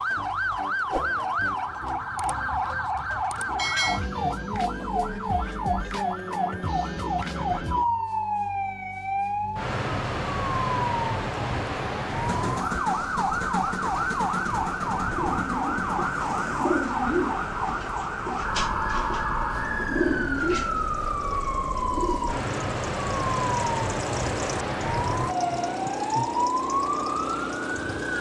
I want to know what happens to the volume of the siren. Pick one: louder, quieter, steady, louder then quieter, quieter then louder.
steady.